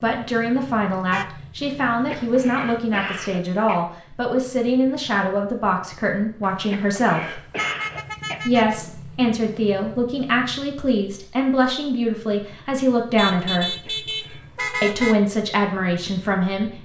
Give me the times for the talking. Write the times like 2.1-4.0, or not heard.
0.0-7.4, 8.4-13.8, 14.8-16.8.